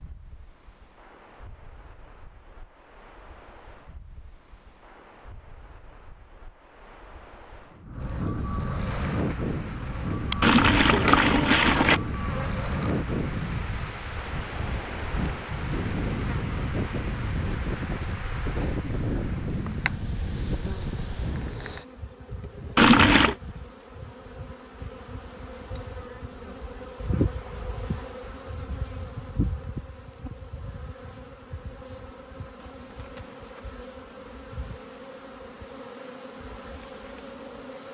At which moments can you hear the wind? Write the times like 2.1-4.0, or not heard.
0.0-21.8.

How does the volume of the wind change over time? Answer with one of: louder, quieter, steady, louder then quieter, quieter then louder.
louder.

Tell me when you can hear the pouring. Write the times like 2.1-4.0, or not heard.
10.4-12.0, 22.8-23.4.